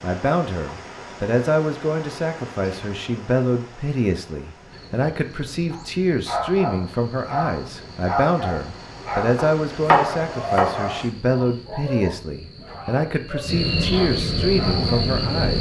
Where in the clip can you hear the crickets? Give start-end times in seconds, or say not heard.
4.5-15.5.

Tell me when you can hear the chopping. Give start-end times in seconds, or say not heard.
9.3-10.8.